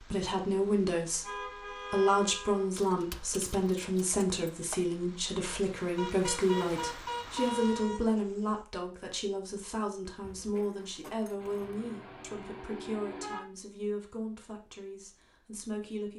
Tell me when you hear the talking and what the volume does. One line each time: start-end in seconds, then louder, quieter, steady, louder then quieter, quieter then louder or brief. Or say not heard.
0.0-16.1 quieter.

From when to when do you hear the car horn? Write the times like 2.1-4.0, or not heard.
1.2-2.6, 6.0-8.0, 11.4-13.4.